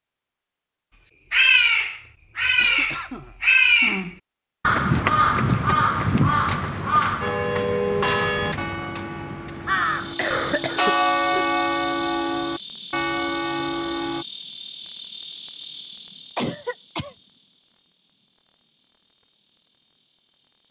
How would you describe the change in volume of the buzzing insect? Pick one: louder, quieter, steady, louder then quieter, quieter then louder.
quieter.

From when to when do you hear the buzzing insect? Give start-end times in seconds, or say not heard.
9.7-20.6.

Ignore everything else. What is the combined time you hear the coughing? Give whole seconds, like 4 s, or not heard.
4 s.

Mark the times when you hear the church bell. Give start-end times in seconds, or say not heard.
7.2-14.2.